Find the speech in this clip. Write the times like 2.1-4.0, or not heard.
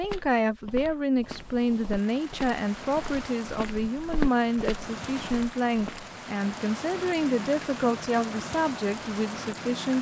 0.0-9.9.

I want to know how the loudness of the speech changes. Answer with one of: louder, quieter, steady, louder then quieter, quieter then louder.
steady.